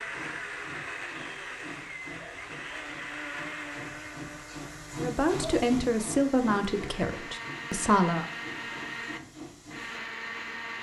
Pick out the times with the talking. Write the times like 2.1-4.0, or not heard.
5.0-8.2.